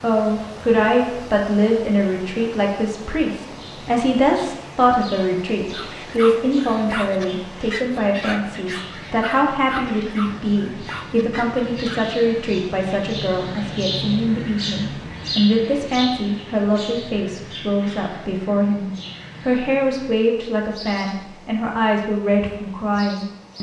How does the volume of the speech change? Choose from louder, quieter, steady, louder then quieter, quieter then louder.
steady.